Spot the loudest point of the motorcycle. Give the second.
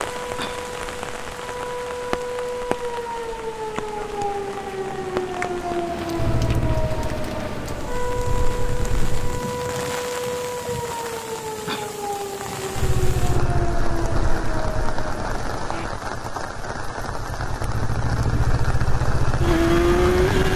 20 s.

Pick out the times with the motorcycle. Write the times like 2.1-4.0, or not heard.
6.2-9.4, 12.8-20.5.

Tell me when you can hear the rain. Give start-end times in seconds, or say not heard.
0.0-20.5.